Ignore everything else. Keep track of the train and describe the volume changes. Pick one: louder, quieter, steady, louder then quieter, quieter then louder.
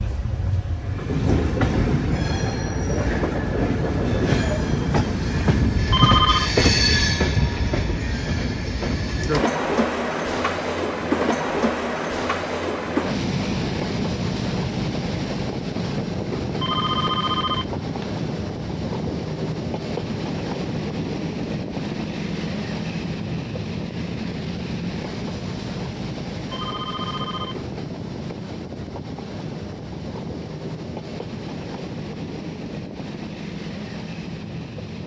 quieter.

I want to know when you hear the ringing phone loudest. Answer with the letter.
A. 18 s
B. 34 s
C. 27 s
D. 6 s
D.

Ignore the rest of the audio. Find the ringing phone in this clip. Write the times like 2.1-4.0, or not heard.
5.9-6.5, 16.6-18.1, 26.4-27.7.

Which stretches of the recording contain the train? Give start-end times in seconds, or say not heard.
0.0-35.0.